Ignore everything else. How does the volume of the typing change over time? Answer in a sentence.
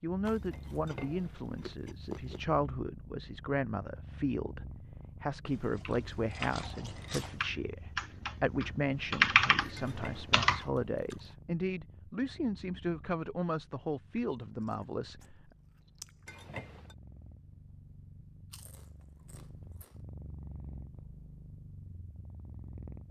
The loudness of the typing goes up, then down.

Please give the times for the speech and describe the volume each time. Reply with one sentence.
The speech can be heard from 0.0 to 15.5 s, at a steady volume.